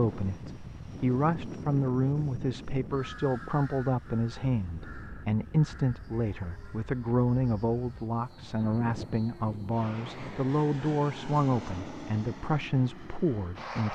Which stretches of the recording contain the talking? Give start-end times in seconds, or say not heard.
0.0-13.8.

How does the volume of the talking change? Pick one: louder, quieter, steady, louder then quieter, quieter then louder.
steady.